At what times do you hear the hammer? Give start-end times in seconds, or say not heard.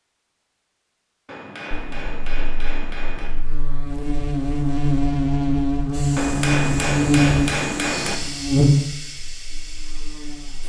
1.2-3.3, 6.2-8.2.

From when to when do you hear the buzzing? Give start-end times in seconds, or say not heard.
1.7-10.6.